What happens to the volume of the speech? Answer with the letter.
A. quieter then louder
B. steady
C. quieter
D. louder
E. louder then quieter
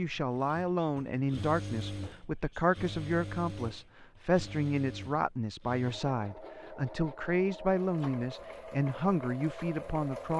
B.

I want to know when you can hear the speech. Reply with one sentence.
You can hear the speech from 0.0 to 10.3 s.